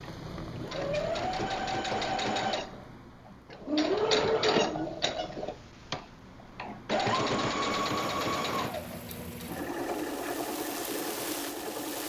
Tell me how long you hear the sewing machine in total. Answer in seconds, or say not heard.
12 s.